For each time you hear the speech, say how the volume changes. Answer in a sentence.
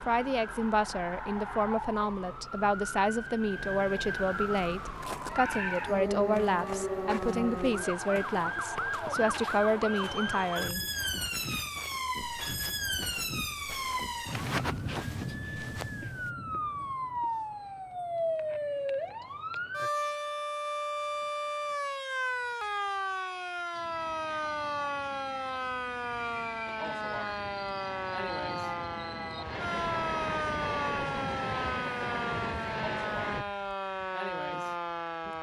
You can hear the speech from 0.1 to 10.8 s, at a steady volume.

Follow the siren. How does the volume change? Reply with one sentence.
The loudness of the siren stays about the same.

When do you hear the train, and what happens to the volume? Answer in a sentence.
The train can be heard from 23.7 to 33.5 s, getting louder.